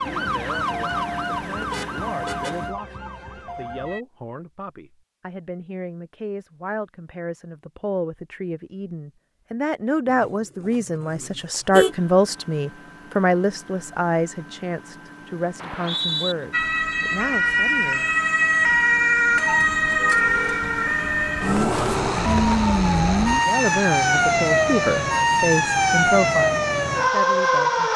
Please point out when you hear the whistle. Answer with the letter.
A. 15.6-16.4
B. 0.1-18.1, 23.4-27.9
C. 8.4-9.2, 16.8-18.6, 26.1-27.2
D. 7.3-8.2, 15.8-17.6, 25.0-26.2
A.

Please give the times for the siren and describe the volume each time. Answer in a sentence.
The siren can be heard from 0.0 to 4.0 s, getting quieter; and from 16.5 to 27.9 s, at a steady volume.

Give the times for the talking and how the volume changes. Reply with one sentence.
You can hear the talking from 0.1 to 18.1 s, getting louder then quieter; and from 23.4 to 27.9 s, getting quieter.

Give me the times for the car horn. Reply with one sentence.
The car horn can be heard from 1.7 to 2.5 s, from 10.1 to 11.9 s and from 19.4 to 20.6 s.